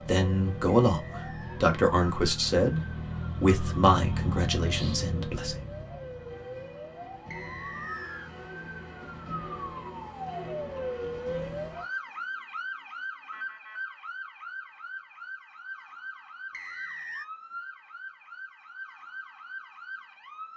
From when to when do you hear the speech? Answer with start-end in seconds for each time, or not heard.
0.0-5.5.